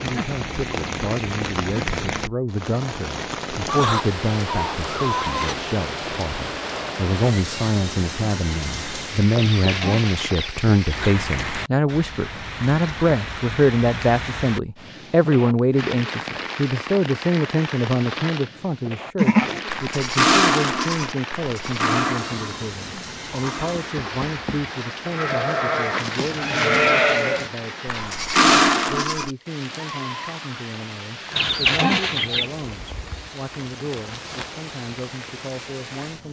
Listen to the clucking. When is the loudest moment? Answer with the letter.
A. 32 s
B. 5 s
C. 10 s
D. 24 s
A.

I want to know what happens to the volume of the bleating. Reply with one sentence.
The volume of the bleating goes down, then up.